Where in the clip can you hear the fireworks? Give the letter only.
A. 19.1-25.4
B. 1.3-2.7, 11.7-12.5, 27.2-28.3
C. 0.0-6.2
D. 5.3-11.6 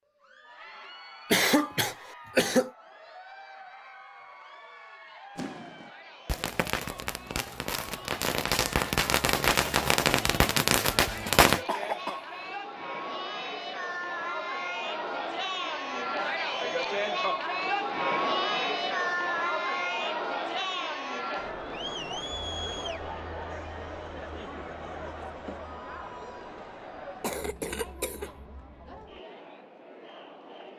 D.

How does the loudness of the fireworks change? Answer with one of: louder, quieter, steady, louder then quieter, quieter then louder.
louder.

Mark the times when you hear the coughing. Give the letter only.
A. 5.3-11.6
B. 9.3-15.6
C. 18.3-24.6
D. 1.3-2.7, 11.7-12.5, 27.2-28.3
D.